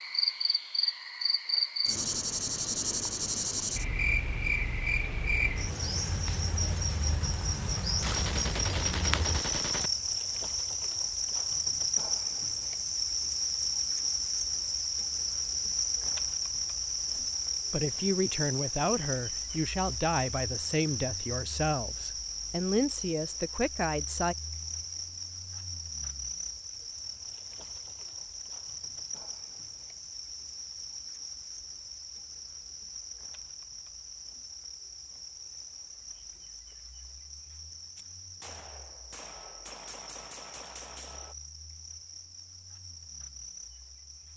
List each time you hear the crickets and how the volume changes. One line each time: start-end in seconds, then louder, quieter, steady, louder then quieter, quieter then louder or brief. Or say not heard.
0.0-44.3 quieter.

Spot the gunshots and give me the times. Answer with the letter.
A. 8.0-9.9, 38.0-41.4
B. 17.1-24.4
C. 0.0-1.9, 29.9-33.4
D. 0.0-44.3
A.